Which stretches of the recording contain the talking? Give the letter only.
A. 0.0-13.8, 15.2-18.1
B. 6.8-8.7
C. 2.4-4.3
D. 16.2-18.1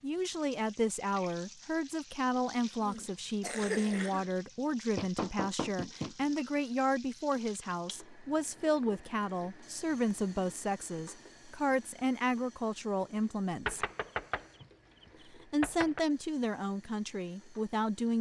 A.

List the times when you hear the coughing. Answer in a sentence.
The coughing can be heard from 2.4 to 4.3 s.